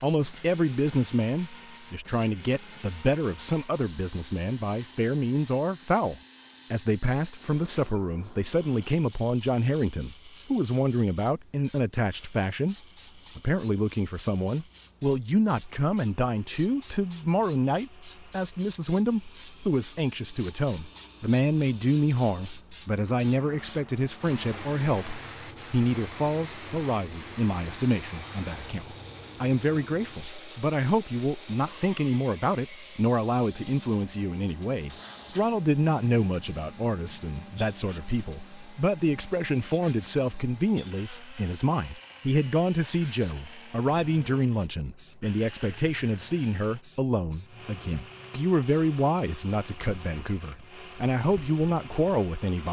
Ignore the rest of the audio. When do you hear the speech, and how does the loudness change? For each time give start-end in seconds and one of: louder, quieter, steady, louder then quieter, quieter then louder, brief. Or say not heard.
0.0-12.8 steady
13.3-52.6 steady.